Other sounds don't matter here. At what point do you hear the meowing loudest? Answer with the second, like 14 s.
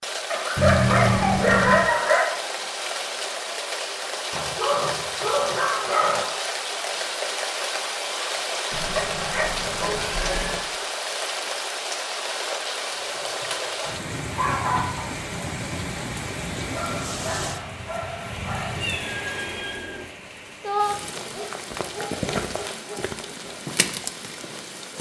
1 s.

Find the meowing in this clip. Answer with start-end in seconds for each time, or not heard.
0.6-1.9, 8.7-10.7, 18.8-20.1.